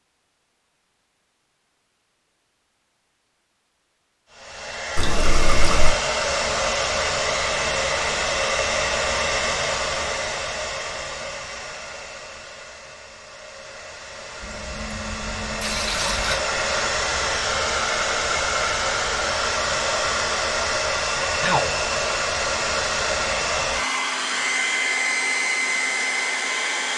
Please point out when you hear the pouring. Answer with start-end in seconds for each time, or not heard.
5.0-6.0, 14.4-16.4.